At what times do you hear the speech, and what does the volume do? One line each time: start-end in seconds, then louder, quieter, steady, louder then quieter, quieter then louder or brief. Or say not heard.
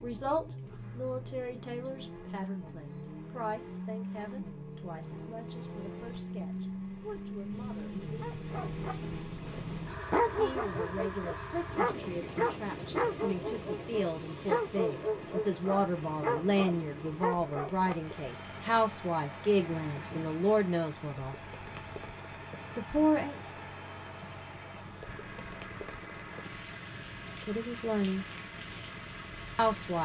0.0-8.4 quieter
10.3-21.4 louder
22.8-23.4 brief
27.4-28.2 brief
29.6-30.0 brief.